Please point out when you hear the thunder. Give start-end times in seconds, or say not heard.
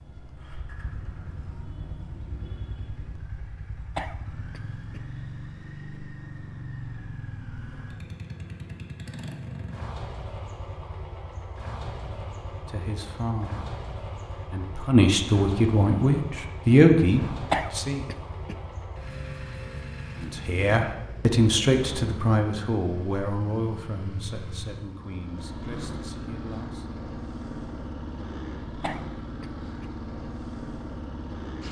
not heard.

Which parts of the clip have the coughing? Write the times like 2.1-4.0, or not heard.
4.0-5.0, 17.5-18.6, 28.8-29.9.